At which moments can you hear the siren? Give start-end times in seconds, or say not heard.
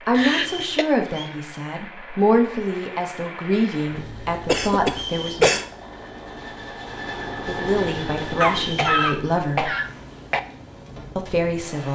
not heard.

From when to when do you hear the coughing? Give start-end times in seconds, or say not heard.
0.1-0.8, 4.5-5.7, 8.4-10.4.